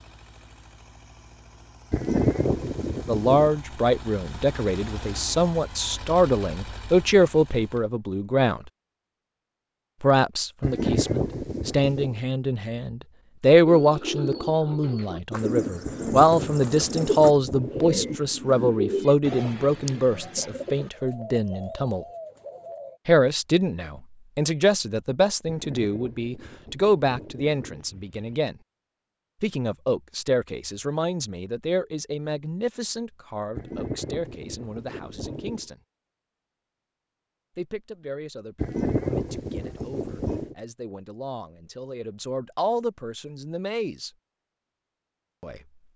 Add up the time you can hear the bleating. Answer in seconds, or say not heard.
13 s.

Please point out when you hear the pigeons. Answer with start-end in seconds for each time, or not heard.
13.7-23.0.